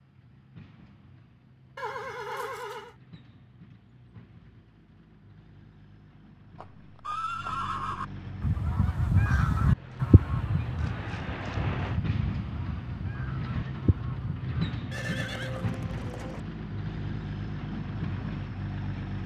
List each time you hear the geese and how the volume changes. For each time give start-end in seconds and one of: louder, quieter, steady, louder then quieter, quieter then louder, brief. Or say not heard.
8.4-14.8 quieter.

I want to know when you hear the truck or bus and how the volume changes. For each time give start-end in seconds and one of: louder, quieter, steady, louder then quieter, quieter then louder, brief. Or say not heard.
0.0-19.2 louder.